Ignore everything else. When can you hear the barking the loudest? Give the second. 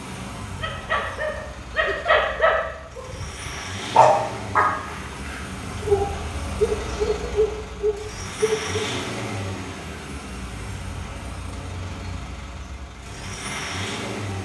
4 s.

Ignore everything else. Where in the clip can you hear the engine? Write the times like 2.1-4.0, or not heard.
0.0-14.4.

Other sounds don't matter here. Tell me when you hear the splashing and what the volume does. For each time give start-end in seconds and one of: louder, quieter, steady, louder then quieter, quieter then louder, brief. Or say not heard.
not heard.